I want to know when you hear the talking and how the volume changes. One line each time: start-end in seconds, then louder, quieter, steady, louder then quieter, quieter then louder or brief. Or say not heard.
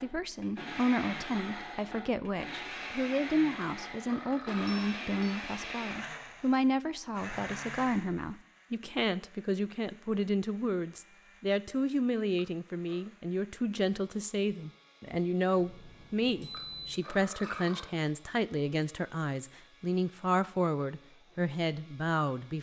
0.0-22.5 steady.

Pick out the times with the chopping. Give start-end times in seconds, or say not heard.
not heard.